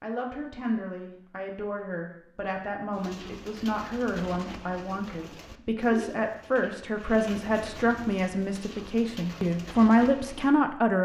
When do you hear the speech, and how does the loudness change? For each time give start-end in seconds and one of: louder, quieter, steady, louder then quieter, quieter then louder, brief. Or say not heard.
0.0-10.9 louder.